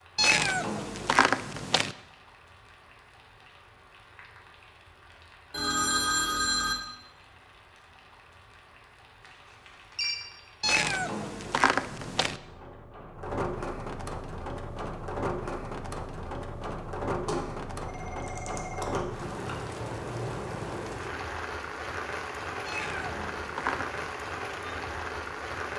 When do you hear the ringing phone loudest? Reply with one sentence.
The volume of the ringing phone peaks at 6 seconds.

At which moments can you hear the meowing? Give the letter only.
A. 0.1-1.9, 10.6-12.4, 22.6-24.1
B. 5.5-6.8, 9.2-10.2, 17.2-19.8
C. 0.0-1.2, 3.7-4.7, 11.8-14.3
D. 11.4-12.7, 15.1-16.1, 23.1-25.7
A.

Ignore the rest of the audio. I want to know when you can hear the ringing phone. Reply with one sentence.
You can hear the ringing phone from 5.5 to 6.8 s, from 9.2 to 10.2 s and from 17.2 to 19.8 s.